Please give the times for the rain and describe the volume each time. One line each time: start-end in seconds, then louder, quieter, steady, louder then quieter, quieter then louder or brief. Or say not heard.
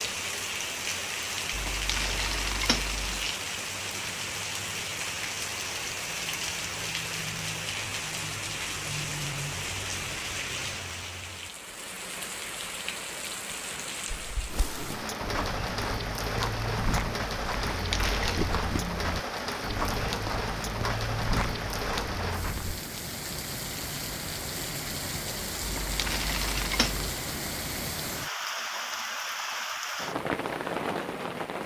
0.0-31.6 steady.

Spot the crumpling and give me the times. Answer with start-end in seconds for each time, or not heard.
1.5-3.3, 17.7-18.5, 25.6-27.1.